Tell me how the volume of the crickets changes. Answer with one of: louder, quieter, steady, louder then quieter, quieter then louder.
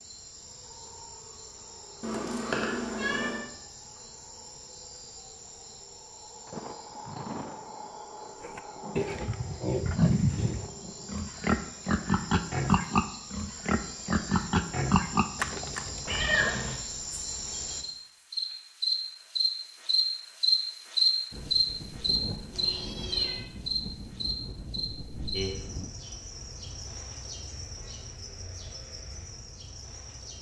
louder then quieter.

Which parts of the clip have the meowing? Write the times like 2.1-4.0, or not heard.
2.0-3.4, 16.1-16.8, 22.5-23.4.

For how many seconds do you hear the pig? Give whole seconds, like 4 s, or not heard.
8 s.